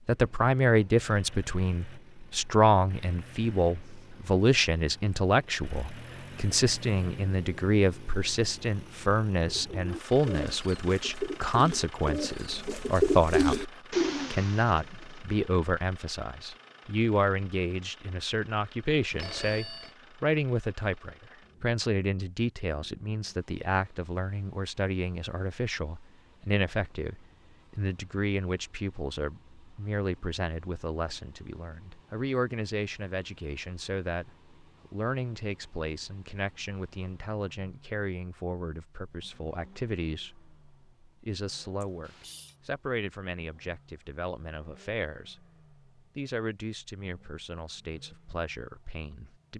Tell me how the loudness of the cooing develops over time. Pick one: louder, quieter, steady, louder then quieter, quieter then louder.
louder then quieter.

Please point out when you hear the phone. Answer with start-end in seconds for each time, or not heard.
19.1-19.9, 41.8-42.5.